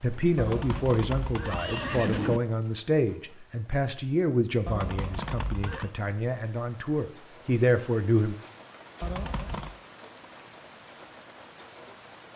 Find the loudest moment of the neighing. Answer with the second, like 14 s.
2 s.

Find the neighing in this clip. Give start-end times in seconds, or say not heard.
0.3-2.4, 4.7-5.9, 9.0-9.8.